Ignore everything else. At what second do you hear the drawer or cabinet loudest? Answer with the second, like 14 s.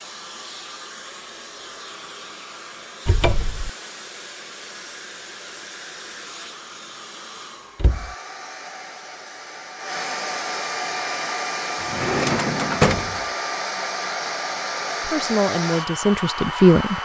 13 s.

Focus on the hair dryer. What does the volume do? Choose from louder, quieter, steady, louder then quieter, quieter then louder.
louder.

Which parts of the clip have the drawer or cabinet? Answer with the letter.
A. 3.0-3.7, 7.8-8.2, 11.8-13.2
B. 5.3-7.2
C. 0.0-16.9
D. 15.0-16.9
A.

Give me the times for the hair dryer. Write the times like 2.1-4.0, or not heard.
0.0-16.9.